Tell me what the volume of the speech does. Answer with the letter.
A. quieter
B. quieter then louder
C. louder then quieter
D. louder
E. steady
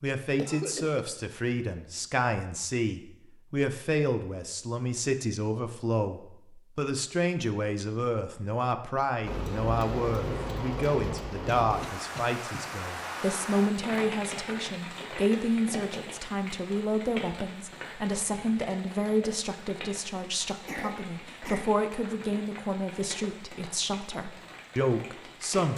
E.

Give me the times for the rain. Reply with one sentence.
You can hear the rain from 9.2 to 25.7 s.